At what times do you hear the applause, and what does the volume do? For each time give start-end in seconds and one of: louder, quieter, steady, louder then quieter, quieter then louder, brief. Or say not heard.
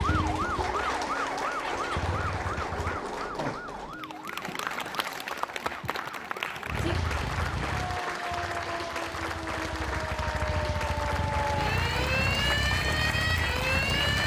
0.0-14.2 steady.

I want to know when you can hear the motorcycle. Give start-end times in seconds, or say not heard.
0.0-3.0, 6.7-14.2.